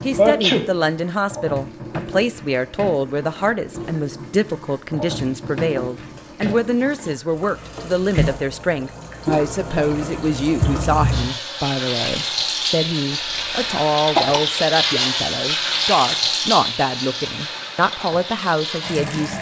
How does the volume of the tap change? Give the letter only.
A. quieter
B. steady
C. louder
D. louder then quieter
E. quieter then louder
C.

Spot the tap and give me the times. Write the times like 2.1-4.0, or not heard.
0.0-19.3.